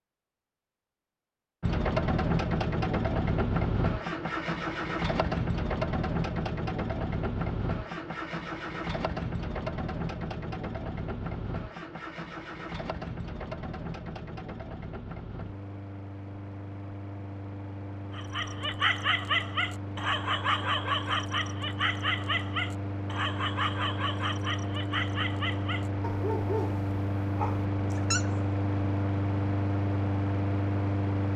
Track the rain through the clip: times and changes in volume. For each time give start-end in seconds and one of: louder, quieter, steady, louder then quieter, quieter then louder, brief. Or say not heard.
not heard.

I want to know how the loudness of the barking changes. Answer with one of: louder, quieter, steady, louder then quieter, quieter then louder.
quieter.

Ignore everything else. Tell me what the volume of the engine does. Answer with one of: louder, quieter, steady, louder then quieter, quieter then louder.
quieter then louder.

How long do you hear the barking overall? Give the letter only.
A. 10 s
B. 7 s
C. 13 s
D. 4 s
A.